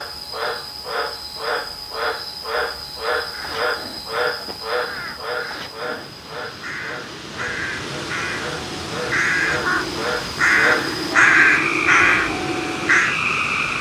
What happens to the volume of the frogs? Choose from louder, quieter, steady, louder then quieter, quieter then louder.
quieter then louder.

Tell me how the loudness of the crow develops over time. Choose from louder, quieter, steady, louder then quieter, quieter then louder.
louder.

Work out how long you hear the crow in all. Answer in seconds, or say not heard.
10 s.